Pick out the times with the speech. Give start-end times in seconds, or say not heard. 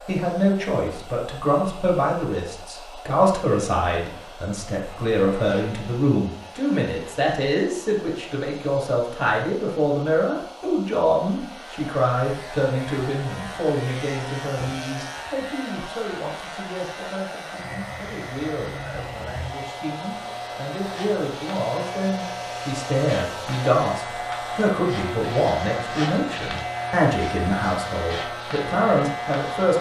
0.1-29.7.